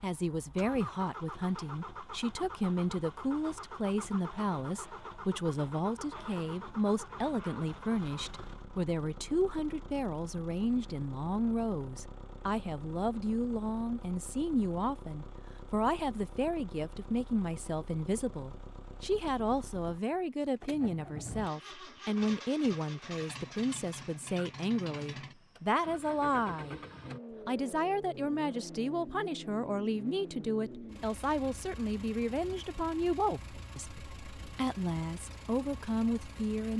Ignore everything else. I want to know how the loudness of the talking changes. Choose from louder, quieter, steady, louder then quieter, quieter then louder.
steady.